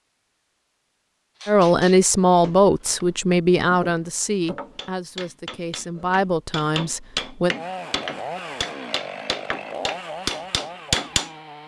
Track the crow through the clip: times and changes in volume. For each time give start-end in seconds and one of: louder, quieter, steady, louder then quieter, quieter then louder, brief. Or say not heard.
not heard.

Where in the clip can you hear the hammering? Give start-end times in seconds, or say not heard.
1.4-11.3.